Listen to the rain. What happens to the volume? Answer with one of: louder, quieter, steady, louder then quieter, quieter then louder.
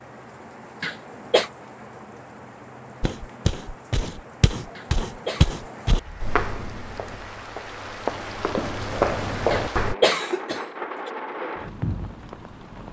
louder.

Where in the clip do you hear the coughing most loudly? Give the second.
10 s.